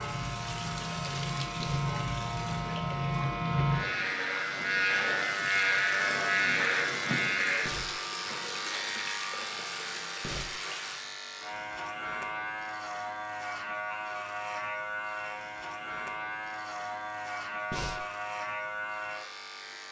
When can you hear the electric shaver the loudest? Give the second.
6 s.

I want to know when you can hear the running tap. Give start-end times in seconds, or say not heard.
0.0-11.2.